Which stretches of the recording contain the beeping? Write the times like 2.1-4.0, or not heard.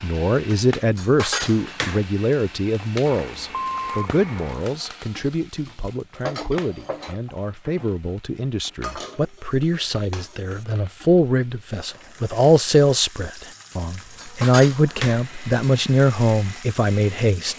3.0-4.5.